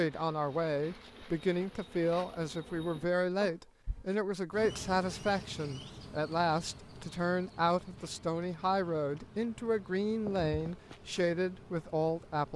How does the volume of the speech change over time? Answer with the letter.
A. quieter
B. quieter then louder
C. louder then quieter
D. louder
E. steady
E.